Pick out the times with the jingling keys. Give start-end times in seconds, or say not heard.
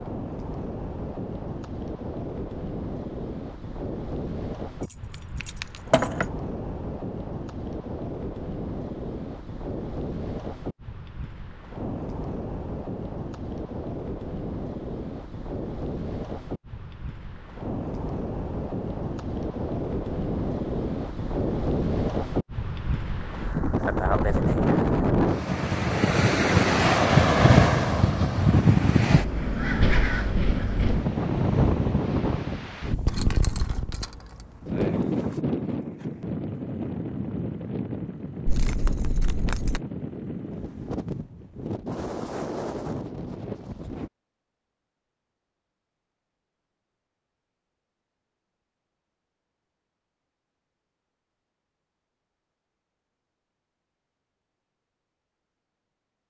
4.8-6.3, 33.0-35.4, 38.5-39.8.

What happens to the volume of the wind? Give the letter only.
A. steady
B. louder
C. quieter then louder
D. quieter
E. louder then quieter
E.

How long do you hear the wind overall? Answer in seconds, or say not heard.
44 s.